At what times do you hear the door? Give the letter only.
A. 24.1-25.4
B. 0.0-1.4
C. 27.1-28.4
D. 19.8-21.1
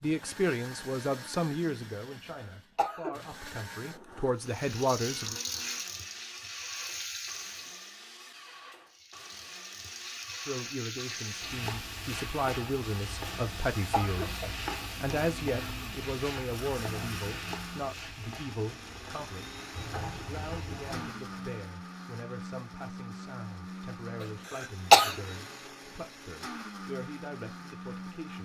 D.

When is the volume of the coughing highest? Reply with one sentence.
The volume of the coughing peaks at 25 seconds.